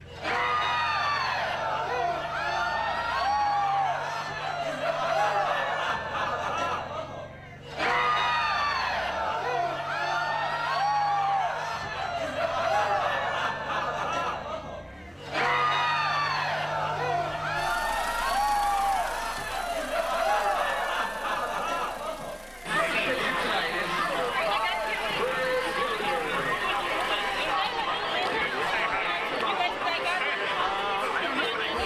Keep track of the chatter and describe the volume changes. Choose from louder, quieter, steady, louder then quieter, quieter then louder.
steady.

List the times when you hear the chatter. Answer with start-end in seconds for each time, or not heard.
0.1-31.8.